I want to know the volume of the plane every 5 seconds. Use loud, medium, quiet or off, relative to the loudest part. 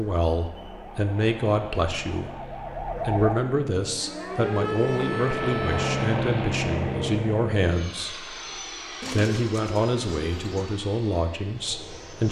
medium, loud, quiet.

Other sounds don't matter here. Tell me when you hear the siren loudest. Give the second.
5 s.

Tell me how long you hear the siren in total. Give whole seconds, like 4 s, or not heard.
6 s.